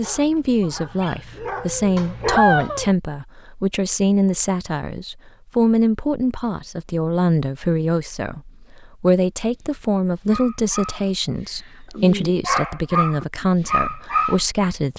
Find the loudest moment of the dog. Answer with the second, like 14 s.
2 s.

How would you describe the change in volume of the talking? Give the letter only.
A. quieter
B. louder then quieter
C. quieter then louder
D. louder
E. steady
E.